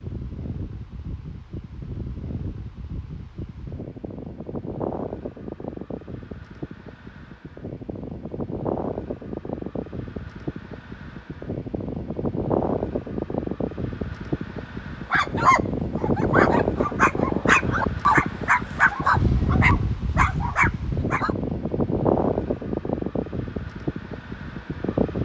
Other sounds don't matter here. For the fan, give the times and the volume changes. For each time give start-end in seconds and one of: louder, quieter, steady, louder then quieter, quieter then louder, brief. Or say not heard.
0.0-25.2 louder.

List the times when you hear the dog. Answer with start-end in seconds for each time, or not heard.
15.1-21.4.